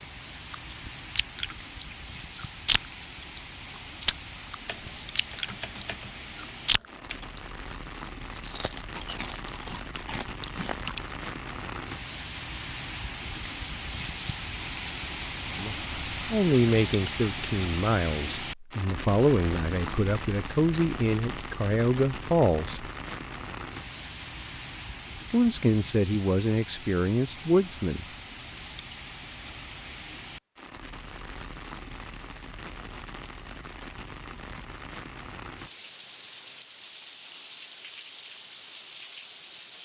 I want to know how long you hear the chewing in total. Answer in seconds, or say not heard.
11 s.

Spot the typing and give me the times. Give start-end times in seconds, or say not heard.
4.7-7.3.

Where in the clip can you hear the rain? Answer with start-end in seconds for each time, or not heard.
0.0-39.8.